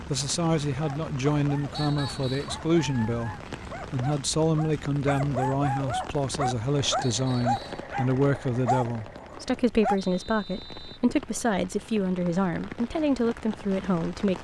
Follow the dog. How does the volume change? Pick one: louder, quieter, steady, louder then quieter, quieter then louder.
louder.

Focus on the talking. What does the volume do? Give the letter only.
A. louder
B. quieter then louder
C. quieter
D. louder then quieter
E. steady
E.